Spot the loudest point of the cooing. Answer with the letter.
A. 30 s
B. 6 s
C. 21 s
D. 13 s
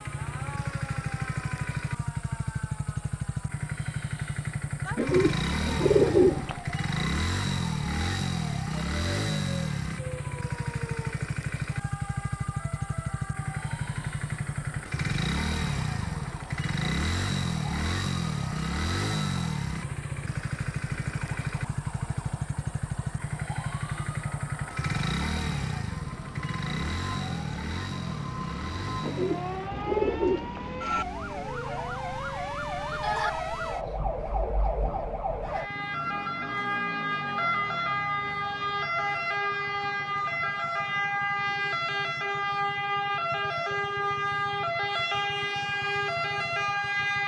B.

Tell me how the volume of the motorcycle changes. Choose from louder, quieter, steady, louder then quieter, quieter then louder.
quieter.